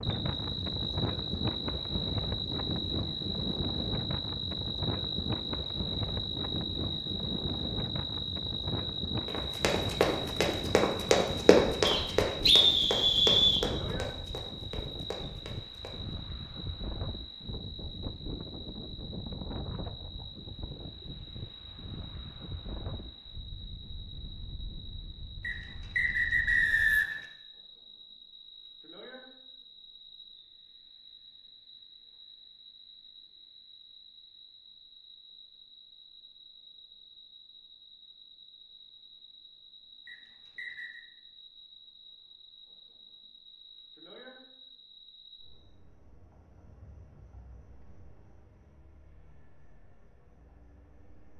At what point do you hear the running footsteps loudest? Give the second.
12 s.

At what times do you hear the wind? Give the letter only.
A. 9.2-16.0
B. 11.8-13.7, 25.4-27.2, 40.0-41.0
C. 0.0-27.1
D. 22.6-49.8
C.